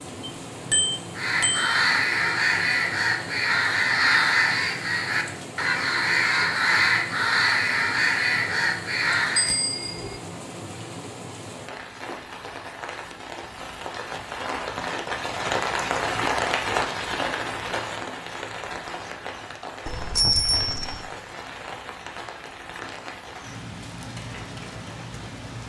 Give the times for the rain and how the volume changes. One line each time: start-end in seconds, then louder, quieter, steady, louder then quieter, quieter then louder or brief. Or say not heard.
0.0-25.6 louder then quieter.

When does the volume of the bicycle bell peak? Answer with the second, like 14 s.
20 s.